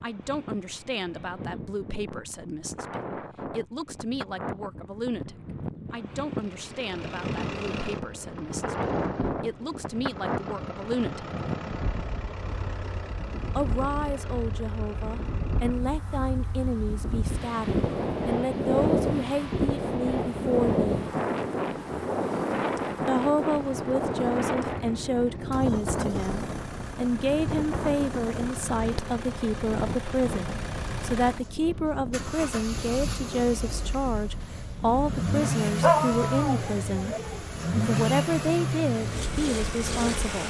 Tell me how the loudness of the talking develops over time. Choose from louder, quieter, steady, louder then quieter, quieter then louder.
louder.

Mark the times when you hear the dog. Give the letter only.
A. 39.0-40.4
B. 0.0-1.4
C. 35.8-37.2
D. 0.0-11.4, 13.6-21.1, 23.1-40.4
C.